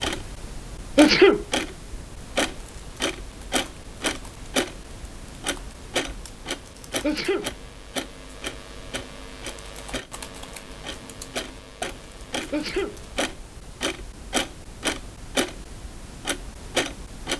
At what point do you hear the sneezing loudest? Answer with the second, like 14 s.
1 s.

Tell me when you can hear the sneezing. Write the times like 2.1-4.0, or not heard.
0.9-1.4, 7.0-7.5, 12.5-13.0.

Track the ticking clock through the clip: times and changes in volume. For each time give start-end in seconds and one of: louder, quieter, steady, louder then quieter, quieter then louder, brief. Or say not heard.
0.0-17.3 quieter then louder.